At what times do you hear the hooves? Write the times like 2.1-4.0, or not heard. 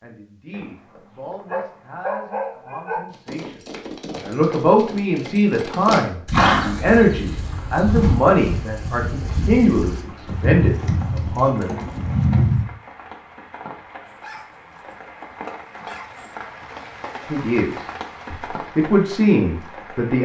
3.0-12.7.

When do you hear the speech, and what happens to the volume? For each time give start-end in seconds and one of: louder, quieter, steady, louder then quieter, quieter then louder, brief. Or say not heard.
0.0-11.7 louder
17.3-20.2 brief.